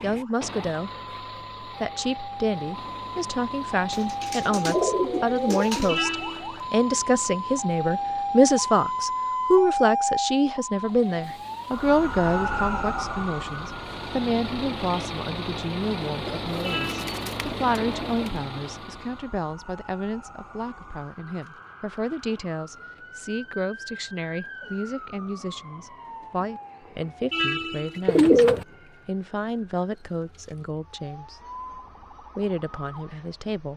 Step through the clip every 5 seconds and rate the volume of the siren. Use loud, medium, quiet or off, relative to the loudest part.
medium, loud, loud, quiet, quiet, quiet, quiet.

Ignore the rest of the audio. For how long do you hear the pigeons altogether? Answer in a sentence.
The pigeons can be heard for 5 seconds in total.